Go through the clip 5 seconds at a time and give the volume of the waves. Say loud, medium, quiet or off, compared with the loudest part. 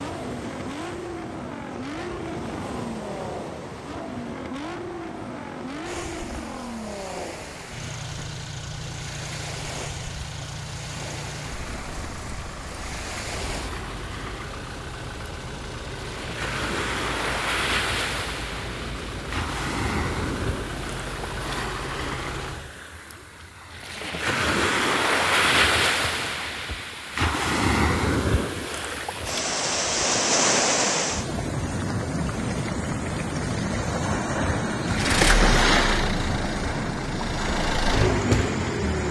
quiet, quiet, quiet, medium, medium, loud, loud, loud.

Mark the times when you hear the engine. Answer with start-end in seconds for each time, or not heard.
0.0-22.8, 34.9-39.0.